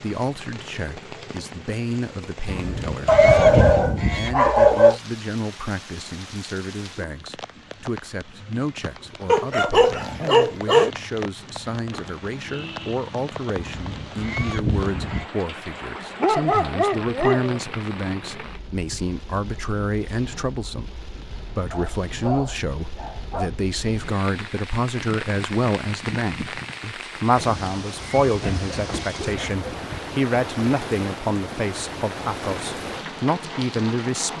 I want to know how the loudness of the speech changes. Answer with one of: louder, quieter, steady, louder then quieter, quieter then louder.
louder.